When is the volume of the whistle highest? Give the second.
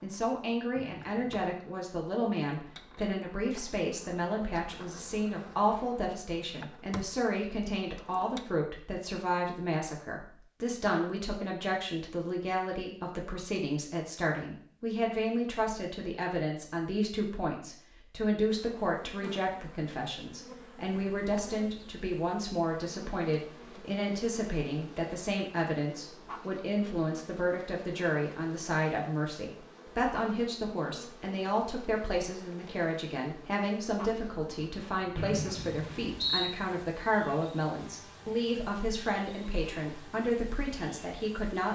36 s.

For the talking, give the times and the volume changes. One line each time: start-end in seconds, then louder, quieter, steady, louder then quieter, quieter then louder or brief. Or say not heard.
0.0-41.7 steady.